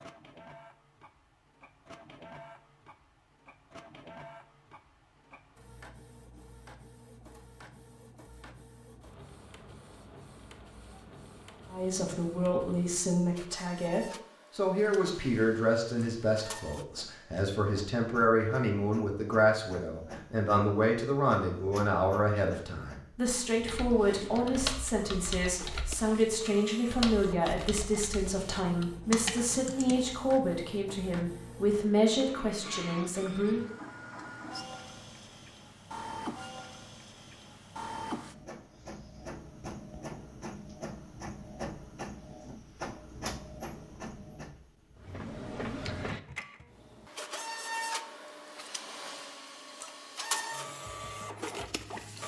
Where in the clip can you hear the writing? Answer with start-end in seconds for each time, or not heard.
not heard.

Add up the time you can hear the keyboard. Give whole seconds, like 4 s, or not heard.
6 s.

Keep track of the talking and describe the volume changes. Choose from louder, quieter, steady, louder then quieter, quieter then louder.
steady.